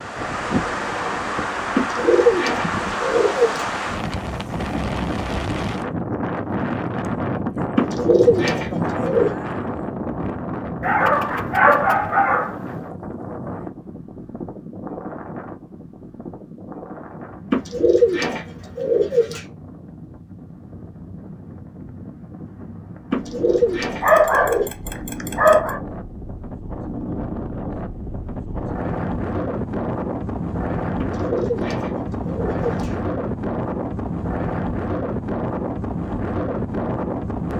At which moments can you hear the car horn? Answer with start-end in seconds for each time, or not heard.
not heard.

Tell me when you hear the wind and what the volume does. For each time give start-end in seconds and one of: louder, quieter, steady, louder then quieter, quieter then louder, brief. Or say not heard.
0.0-37.5 quieter then louder.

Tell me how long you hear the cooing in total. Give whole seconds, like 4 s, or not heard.
9 s.